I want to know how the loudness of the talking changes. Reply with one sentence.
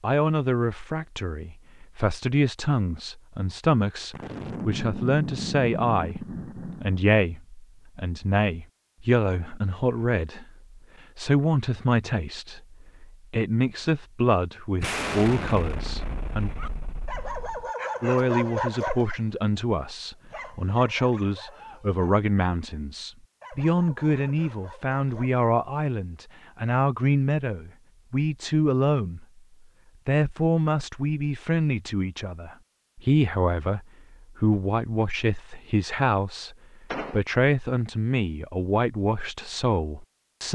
The volume of the talking stays about the same.